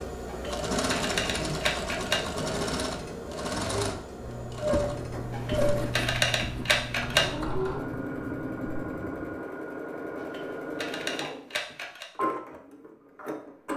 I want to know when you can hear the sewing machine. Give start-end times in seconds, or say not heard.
0.0-13.7.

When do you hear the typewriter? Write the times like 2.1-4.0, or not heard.
0.2-2.2, 5.3-7.3, 10.2-12.1.